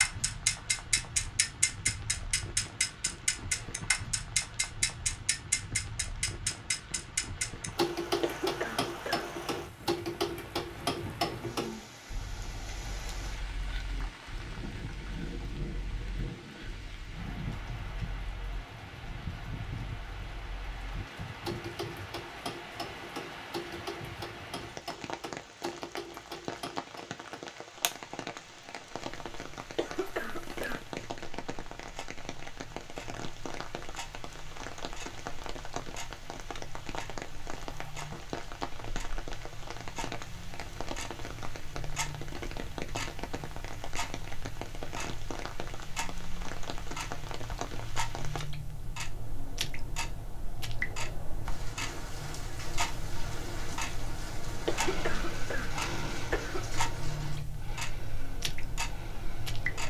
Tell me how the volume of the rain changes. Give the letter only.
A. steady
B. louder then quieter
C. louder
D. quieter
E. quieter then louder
A.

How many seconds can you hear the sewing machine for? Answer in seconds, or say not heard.
5 s.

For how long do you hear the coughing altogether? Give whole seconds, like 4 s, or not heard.
4 s.